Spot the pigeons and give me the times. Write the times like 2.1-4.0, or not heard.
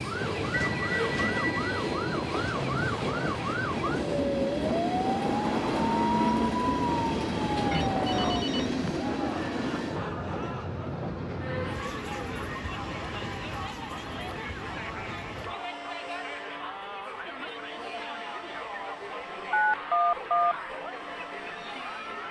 not heard.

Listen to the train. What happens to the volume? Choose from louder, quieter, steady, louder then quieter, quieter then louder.
quieter.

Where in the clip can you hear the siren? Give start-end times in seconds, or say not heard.
0.0-8.5.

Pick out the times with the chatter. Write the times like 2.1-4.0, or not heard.
8.8-22.2.